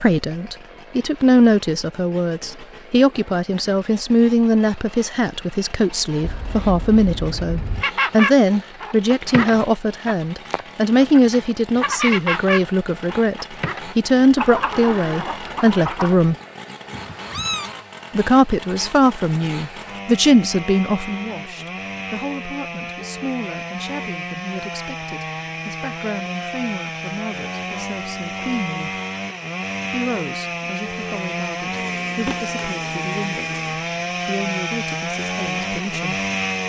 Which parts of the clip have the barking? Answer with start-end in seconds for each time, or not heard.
not heard.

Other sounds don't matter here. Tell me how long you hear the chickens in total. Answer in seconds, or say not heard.
8 s.